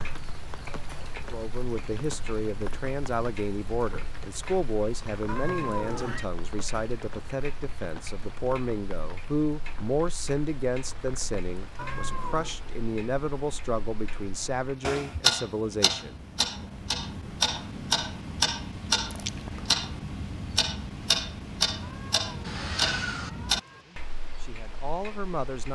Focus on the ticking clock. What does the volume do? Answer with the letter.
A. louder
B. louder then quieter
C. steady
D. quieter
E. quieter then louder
A.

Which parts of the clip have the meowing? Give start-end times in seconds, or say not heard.
5.2-6.2, 11.8-12.6, 21.8-23.9.